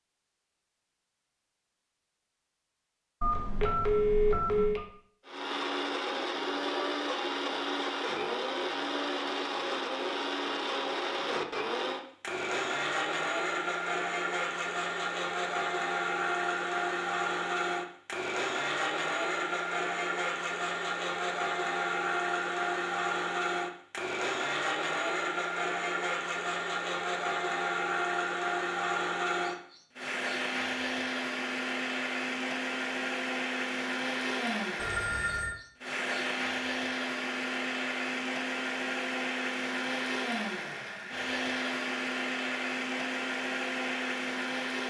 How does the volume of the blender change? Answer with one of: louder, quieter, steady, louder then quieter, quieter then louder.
steady.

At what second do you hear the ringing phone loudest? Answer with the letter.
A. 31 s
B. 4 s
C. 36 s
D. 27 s
B.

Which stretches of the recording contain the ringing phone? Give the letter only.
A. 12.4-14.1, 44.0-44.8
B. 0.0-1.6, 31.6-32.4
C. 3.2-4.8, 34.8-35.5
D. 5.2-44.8
C.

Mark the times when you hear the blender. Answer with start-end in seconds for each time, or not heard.
5.2-44.8.